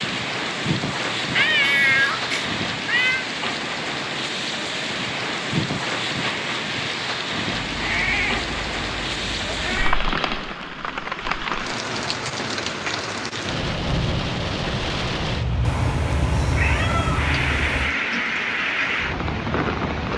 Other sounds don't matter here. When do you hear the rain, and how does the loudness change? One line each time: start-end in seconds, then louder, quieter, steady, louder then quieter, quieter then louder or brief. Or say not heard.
0.0-20.1 steady.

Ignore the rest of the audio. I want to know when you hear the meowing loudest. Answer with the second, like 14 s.
2 s.